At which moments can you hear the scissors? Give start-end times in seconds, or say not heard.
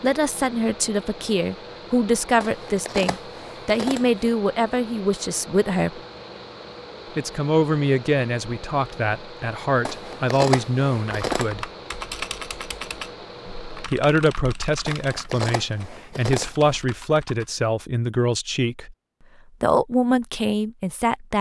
2.4-4.2, 9.8-11.5, 14.8-16.8.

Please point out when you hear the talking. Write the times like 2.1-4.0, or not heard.
0.0-6.0, 7.2-11.7, 13.8-18.9, 19.6-21.3.